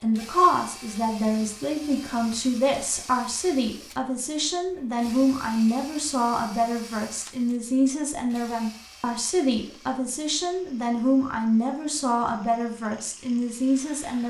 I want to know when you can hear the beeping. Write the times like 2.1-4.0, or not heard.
not heard.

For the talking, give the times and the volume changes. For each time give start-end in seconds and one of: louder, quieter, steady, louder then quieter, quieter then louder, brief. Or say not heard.
0.0-14.2 steady.